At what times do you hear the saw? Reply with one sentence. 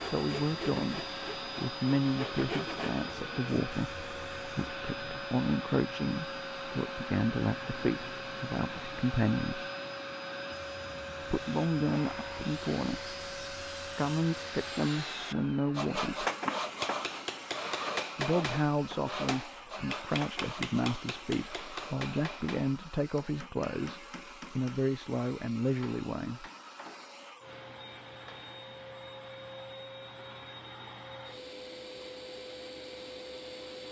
The saw can be heard from 0.0 to 3.0 s and from 11.3 to 22.5 s.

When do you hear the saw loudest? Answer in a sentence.
The loudest moment of the saw is at 16 seconds.